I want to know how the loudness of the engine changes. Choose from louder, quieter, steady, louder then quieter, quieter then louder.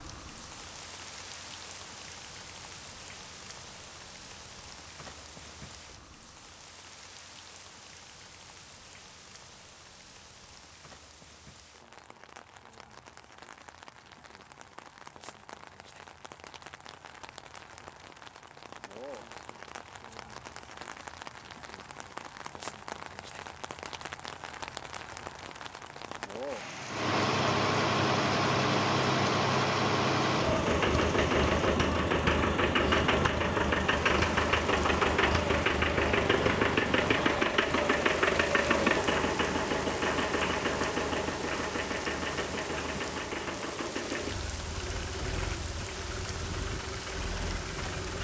quieter.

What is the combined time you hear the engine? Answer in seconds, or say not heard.
21 s.